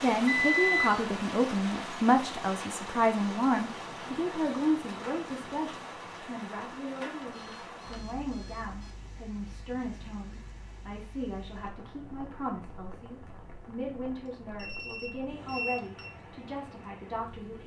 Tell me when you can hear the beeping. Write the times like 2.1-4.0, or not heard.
0.2-0.9, 7.2-8.9, 14.2-16.1.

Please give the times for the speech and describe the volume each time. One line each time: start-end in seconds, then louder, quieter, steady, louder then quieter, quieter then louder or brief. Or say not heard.
0.0-17.6 quieter.